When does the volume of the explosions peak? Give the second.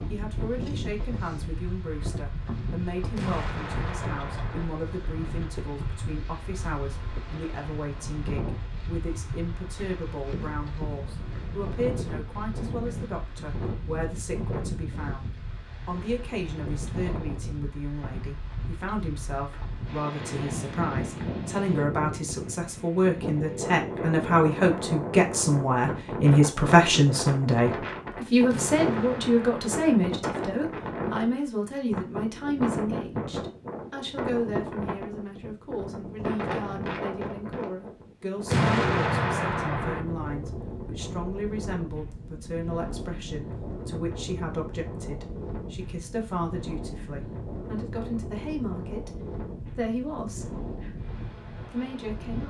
39 s.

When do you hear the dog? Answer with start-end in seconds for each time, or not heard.
not heard.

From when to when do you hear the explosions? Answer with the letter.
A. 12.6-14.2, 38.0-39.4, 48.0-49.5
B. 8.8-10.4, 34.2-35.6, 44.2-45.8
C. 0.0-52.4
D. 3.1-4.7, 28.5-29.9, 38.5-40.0
D.